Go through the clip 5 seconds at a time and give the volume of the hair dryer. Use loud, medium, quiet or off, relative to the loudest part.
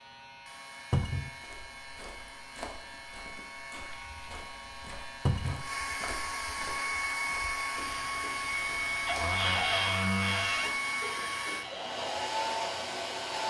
quiet, loud, loud.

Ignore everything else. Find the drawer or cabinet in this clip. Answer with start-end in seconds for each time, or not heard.
0.9-1.3, 5.2-5.7, 9.1-10.8.